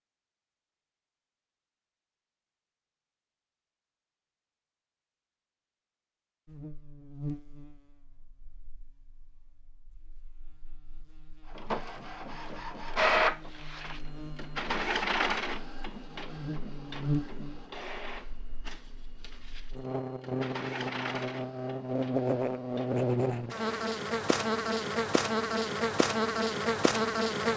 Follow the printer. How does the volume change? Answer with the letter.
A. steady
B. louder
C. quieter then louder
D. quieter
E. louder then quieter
D.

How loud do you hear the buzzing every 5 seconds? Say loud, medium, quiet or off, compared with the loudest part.
off, quiet, quiet, medium, loud, loud.